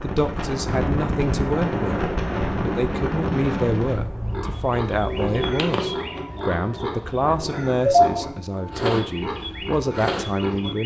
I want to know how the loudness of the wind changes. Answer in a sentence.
The volume of the wind goes down.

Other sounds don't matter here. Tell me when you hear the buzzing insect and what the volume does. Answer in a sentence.
The buzzing insect can't be heard in this clip.